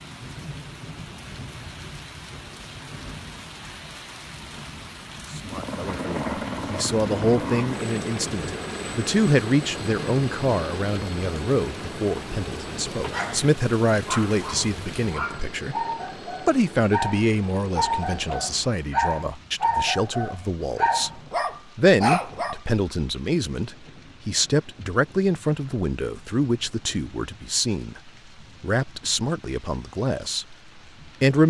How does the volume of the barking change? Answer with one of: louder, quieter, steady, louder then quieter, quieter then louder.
louder.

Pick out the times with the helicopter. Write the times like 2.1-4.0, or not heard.
5.5-18.9.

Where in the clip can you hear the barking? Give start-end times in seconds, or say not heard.
12.9-22.6.